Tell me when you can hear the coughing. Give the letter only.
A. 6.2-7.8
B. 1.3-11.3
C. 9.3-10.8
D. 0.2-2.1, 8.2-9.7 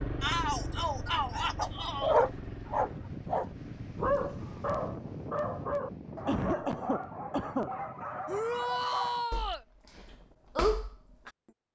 A.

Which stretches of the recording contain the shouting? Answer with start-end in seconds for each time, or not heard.
0.2-2.1, 8.2-9.7.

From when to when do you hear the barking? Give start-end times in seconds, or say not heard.
1.3-11.3.